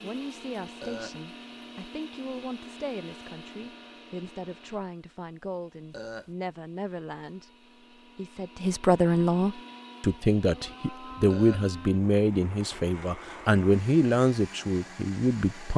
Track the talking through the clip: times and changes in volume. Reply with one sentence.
The talking can be heard from 0.0 to 15.7 s, getting louder.